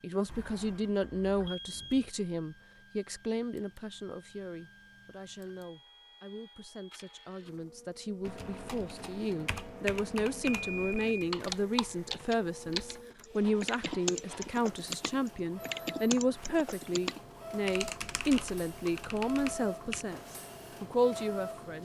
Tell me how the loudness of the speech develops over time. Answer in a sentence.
The loudness of the speech goes down, then up.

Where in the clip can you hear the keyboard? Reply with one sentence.
The keyboard can be heard from 8.2 to 20.1 s.